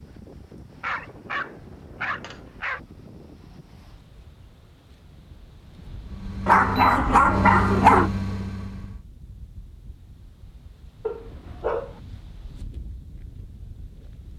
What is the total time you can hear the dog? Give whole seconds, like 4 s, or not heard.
5 s.